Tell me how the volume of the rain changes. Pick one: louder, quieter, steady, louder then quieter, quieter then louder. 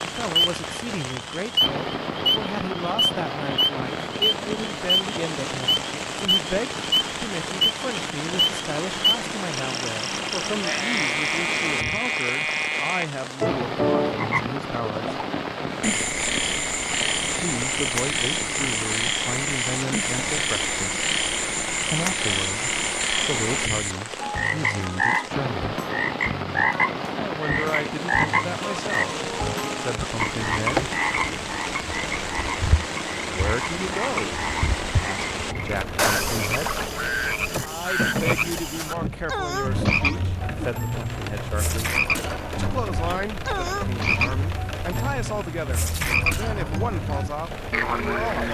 steady.